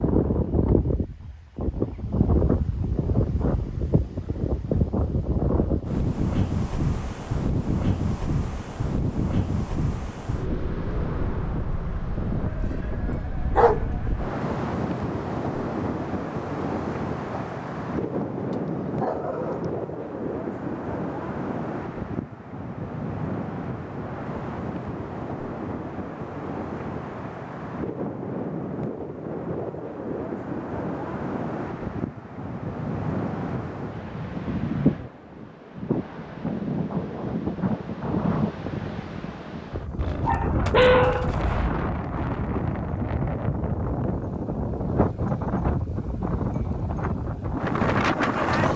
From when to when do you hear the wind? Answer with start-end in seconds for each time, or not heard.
0.0-48.7.